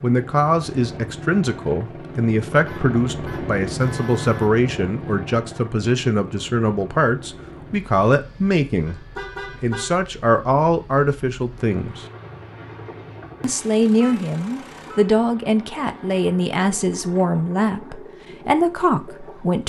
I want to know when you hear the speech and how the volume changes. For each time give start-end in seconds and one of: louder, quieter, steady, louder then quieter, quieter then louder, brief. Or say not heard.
0.0-12.1 steady
13.4-19.6 steady.